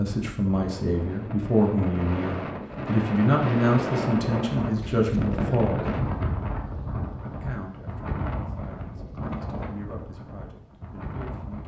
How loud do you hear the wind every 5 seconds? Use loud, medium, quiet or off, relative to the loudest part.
loud, loud, medium.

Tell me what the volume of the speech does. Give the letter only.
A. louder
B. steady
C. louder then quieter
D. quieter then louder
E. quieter
E.